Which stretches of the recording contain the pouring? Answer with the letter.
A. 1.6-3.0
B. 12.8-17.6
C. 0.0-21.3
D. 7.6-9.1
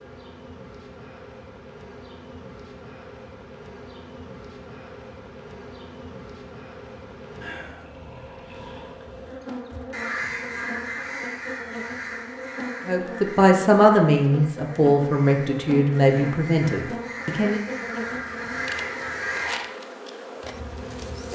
D.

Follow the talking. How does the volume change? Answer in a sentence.
The volume of the talking goes down.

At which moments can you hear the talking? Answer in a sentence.
The talking can be heard from 12.8 to 17.6 s.